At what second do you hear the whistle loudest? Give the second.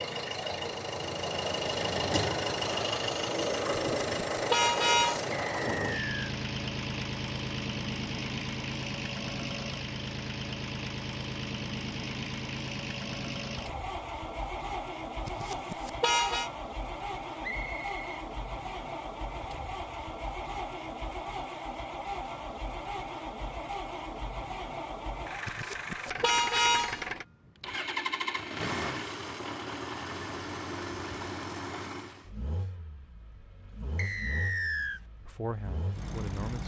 35 s.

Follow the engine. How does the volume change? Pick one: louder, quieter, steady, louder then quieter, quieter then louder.
quieter.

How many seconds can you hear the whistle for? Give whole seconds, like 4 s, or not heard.
3 s.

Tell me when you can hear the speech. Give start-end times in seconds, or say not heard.
35.2-36.6.